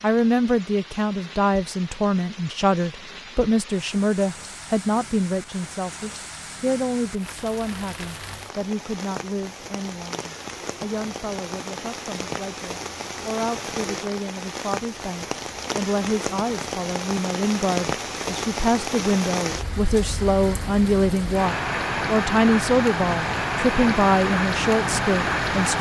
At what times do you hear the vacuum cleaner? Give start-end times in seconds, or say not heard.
not heard.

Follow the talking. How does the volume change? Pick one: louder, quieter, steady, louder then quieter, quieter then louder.
quieter then louder.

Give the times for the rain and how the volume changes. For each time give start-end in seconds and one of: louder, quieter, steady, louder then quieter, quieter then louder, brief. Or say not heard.
0.0-25.7 louder.